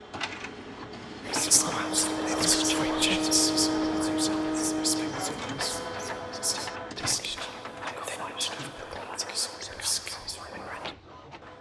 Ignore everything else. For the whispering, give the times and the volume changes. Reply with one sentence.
The whispering can be heard from 1.2 to 10.9 s, getting quieter.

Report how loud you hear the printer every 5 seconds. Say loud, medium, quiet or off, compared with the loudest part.
loud, medium, quiet.